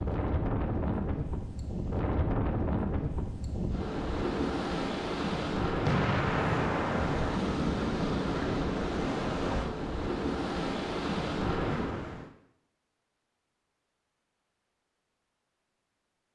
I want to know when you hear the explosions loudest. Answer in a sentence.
The loudest moment of the explosions is at 6 seconds.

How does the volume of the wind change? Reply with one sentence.
The volume of the wind stays about the same.